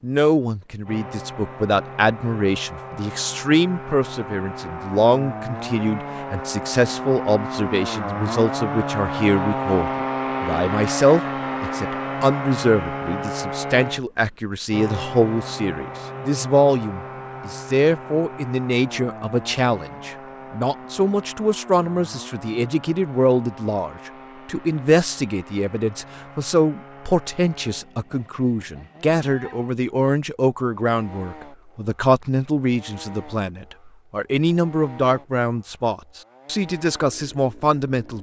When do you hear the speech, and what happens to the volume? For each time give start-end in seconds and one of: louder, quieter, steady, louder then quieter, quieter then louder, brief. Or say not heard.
0.0-38.1 steady.